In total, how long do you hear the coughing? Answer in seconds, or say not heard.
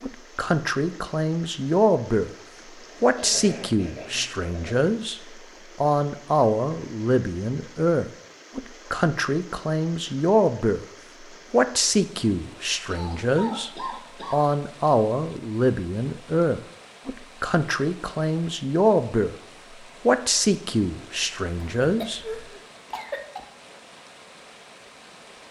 5 s.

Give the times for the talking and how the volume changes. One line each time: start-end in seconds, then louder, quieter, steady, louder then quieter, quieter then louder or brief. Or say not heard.
0.0-2.3 brief
3.0-5.2 brief
5.8-10.8 steady
11.5-19.4 steady
20.1-22.4 brief.